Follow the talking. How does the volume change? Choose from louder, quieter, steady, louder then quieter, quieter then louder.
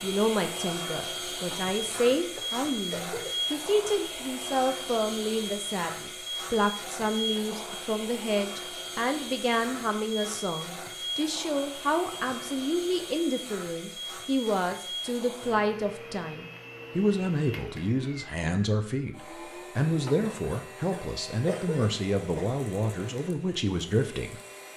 steady.